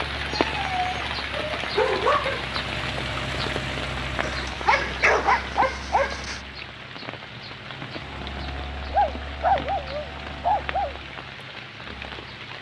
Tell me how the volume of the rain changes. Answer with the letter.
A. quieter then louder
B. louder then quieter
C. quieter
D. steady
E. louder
C.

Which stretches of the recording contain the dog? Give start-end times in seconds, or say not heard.
0.3-2.5, 4.2-6.4, 8.9-10.9.